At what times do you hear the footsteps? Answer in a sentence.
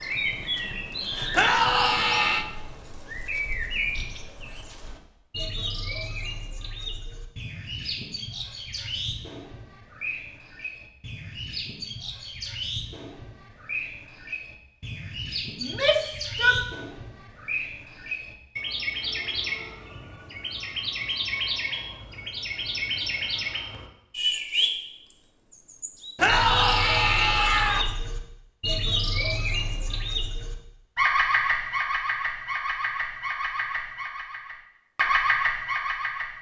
You can't hear the footsteps here.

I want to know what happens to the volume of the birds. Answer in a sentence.
The loudness of the birds goes up.